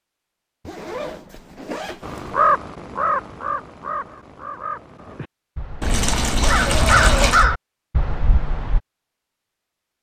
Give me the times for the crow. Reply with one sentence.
The crow can be heard from 2.0 to 8.8 s.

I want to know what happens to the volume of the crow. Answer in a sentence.
The loudness of the crow goes down, then up.